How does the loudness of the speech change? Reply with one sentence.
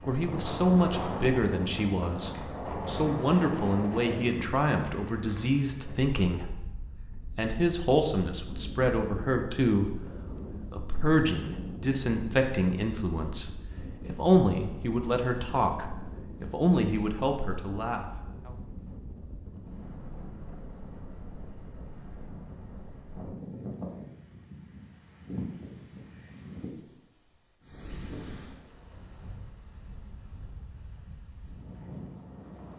The loudness of the speech stays about the same.